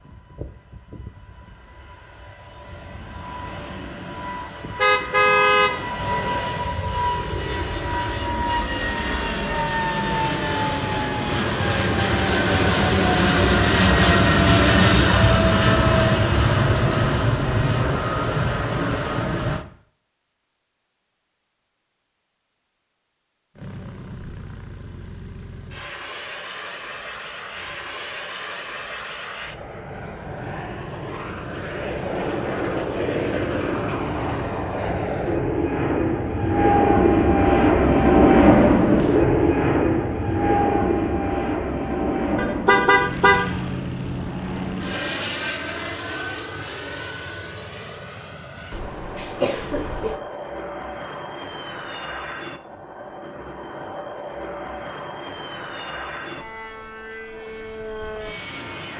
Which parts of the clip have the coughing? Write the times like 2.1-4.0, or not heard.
48.7-50.2.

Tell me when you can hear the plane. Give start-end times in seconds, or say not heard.
0.0-19.6, 23.6-58.9.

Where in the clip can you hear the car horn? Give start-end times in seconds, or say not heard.
4.8-5.8, 42.4-43.5.